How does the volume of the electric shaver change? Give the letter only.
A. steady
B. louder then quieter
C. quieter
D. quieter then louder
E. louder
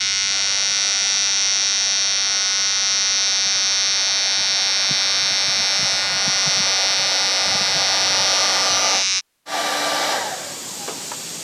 A.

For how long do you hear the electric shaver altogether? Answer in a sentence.
The electric shaver can be heard for 9 seconds in total.